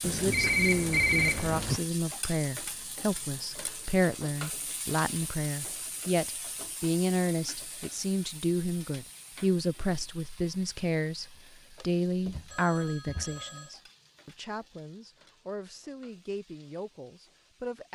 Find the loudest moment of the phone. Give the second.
1 s.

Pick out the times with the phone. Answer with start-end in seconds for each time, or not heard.
0.0-1.8, 11.8-13.8.